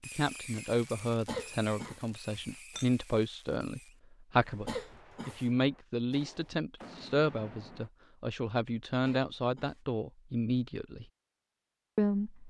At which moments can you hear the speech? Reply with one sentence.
You can hear the speech from 0.0 to 11.1 s and from 11.9 to 12.4 s.